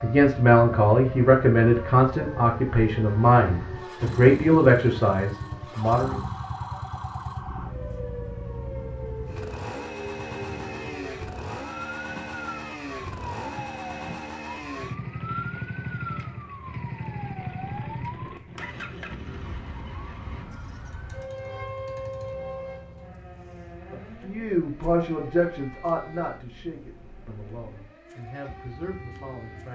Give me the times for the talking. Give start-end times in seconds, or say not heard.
0.0-6.2, 23.9-29.7.